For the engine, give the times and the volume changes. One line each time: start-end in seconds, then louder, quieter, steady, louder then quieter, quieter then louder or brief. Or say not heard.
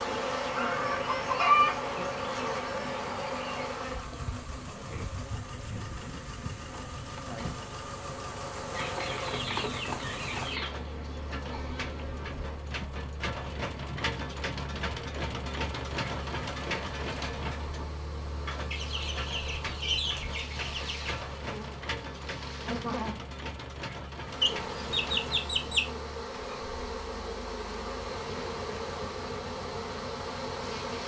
0.0-31.0 louder then quieter.